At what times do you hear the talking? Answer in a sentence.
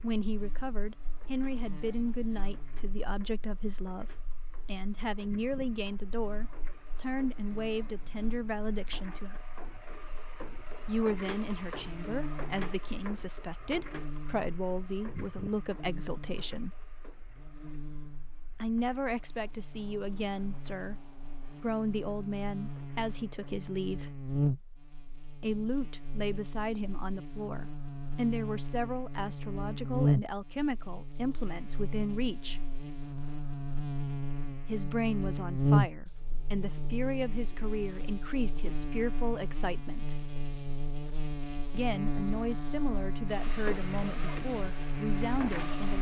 The talking can be heard from 0.0 to 9.4 s, from 10.8 to 16.8 s, from 18.6 to 24.1 s, from 25.4 to 32.6 s, from 34.6 to 40.1 s and from 41.7 to 45.9 s.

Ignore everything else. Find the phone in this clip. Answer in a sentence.
The phone can't be heard in this clip.